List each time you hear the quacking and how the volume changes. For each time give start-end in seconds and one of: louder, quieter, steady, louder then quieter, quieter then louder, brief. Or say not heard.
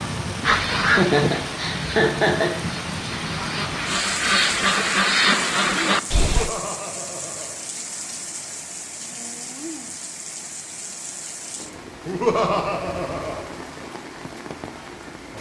0.4-6.5 quieter then louder.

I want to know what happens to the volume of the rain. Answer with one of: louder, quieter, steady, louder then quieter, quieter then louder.
quieter.